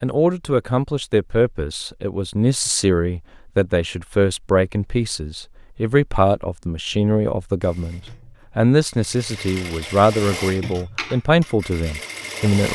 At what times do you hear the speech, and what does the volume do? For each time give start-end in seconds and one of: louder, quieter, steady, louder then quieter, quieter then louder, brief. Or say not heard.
0.0-12.7 steady.